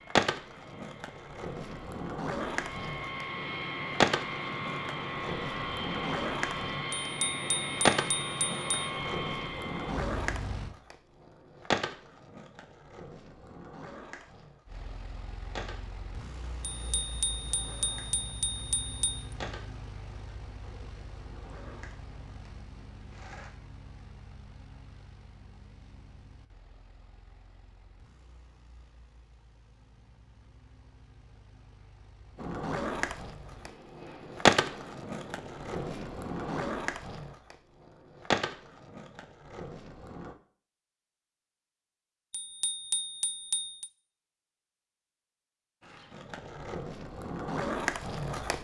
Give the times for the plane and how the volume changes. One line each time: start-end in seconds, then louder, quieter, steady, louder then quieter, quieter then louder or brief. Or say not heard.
0.0-10.8 louder
14.7-36.6 quieter then louder.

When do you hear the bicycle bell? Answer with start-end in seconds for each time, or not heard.
6.9-8.9, 16.7-19.3, 42.3-43.9.